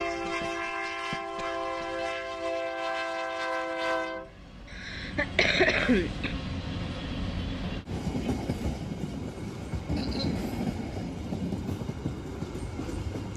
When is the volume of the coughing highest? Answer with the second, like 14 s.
6 s.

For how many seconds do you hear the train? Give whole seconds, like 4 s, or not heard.
13 s.